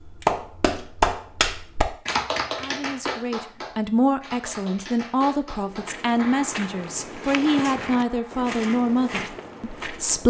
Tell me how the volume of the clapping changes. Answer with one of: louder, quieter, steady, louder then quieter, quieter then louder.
quieter.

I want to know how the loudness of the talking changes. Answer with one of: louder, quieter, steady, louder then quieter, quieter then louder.
steady.